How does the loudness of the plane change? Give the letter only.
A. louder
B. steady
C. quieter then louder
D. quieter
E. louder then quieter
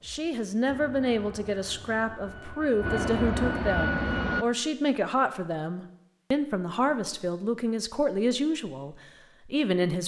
A.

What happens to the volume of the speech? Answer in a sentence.
The volume of the speech stays about the same.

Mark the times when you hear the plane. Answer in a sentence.
The plane can be heard from 0.0 to 4.5 s.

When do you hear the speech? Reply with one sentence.
The speech can be heard from 0.0 to 10.0 s.